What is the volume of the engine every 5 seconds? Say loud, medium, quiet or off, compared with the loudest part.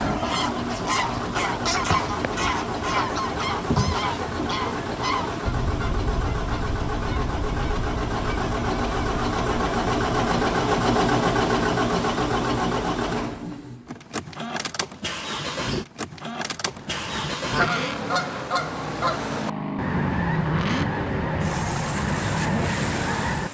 medium, loud, loud, medium, medium.